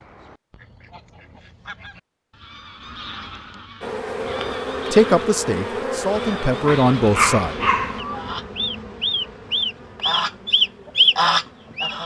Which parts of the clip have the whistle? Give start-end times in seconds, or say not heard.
not heard.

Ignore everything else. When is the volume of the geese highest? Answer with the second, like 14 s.
11 s.